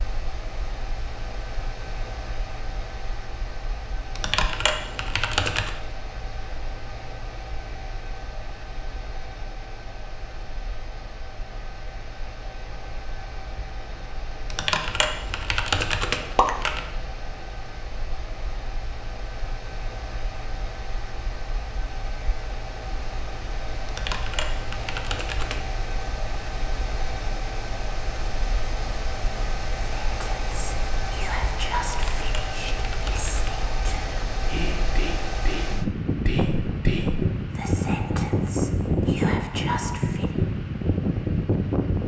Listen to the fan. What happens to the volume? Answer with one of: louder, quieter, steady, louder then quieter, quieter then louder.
louder.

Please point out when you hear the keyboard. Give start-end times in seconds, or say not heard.
4.2-5.7, 14.5-16.9, 23.9-25.6, 31.9-33.5.